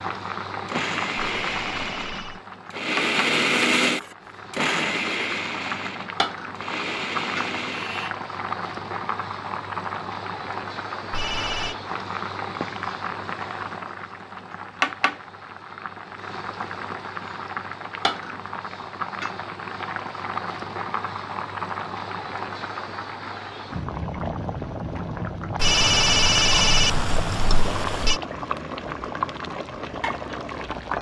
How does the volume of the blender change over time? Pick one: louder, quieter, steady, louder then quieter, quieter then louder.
louder then quieter.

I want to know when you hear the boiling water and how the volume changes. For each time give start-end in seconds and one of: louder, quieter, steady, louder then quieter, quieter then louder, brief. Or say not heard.
0.0-30.9 steady.